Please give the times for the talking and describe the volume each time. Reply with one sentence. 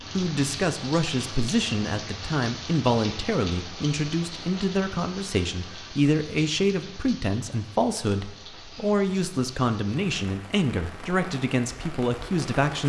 You can hear the talking from 0.1 to 12.8 s, at a steady volume.